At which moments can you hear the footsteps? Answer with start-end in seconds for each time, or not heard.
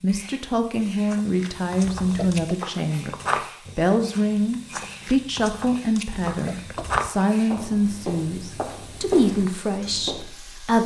1.1-10.3.